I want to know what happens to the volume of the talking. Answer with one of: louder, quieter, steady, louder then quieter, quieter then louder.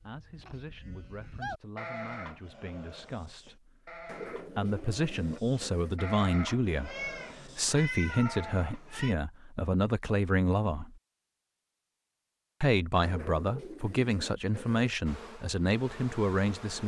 louder.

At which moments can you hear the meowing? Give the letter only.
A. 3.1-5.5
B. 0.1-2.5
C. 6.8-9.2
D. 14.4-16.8
C.